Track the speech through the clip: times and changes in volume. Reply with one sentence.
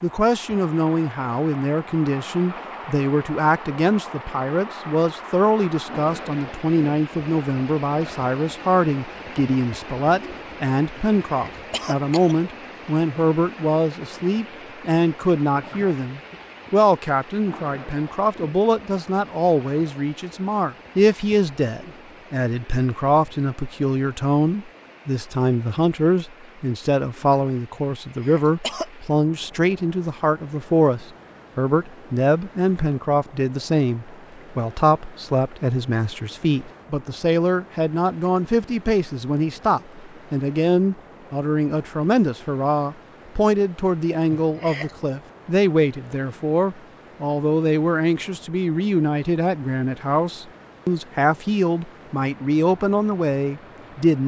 The speech can be heard from 0.0 to 54.2 s, at a steady volume.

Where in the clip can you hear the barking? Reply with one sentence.
You can't hear the barking here.